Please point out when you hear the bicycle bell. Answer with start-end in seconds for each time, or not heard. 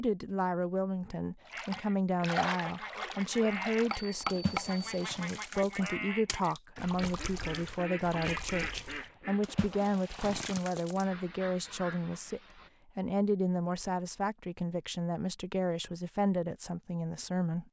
3.9-5.1.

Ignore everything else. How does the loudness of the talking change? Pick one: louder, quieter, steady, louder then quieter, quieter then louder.
steady.